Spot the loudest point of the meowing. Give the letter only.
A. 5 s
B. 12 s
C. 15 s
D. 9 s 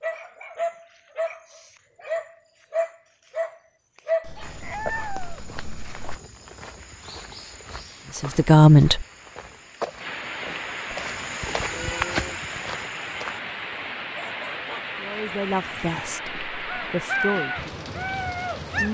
A.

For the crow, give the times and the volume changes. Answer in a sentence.
The crow can't be heard in this clip.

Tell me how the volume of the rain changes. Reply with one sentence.
The loudness of the rain goes up.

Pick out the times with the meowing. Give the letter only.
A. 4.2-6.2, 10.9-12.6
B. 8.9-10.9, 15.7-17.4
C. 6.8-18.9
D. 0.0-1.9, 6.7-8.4
A.